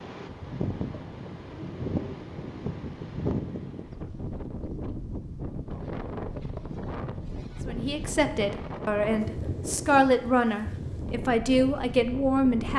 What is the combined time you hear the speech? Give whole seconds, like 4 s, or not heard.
5 s.